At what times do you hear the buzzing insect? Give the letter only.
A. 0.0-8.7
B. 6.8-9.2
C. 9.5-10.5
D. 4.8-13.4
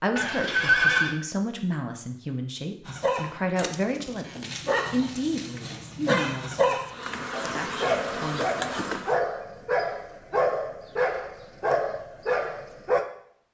B.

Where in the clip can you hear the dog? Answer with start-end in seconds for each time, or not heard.
2.9-13.1.